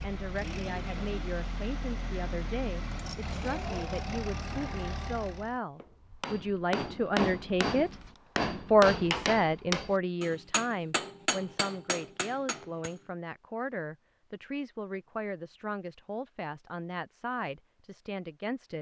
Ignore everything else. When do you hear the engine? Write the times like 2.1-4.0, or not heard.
0.0-5.6.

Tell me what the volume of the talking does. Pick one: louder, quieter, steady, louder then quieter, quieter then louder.
louder then quieter.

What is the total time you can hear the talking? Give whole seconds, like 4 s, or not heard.
18 s.